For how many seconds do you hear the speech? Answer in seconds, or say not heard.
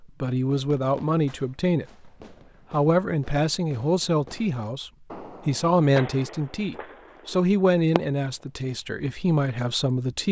9 s.